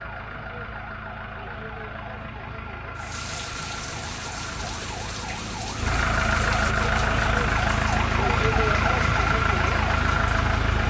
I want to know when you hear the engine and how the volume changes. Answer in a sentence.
You can hear the engine from 0.0 to 10.8 s, getting louder.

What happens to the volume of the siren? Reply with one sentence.
The volume of the siren goes up.